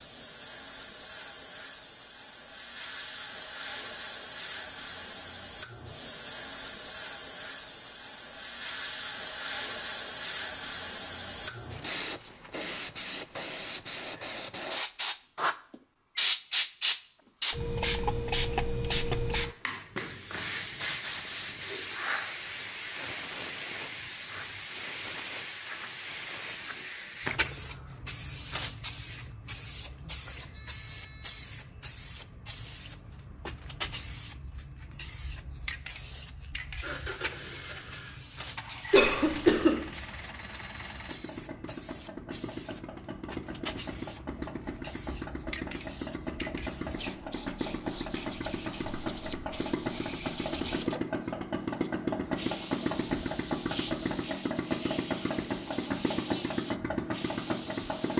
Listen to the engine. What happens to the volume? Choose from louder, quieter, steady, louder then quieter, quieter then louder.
louder.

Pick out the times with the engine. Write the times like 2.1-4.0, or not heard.
36.8-58.1.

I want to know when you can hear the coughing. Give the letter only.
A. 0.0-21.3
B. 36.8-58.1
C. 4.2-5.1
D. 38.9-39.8
D.